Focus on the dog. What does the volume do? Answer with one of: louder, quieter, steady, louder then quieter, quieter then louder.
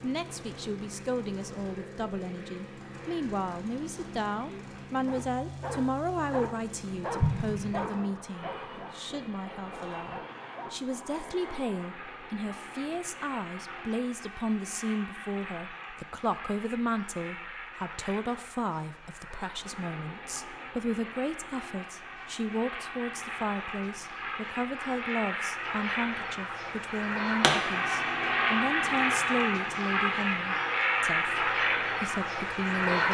quieter.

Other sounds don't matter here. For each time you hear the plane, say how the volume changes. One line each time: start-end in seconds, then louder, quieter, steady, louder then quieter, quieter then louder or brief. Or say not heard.
0.0-33.0 louder.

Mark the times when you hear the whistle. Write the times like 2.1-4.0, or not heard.
not heard.